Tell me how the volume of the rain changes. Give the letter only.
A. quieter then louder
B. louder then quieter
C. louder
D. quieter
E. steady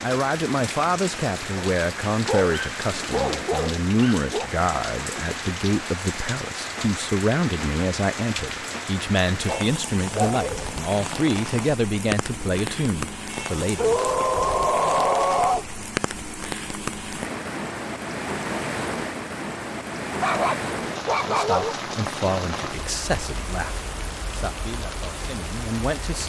E.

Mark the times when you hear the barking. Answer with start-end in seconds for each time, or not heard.
1.6-4.5, 9.4-10.5, 13.8-15.7, 20.2-21.8.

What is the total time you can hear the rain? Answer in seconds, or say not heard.
26 s.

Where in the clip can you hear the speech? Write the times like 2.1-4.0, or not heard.
0.0-14.1, 21.2-26.2.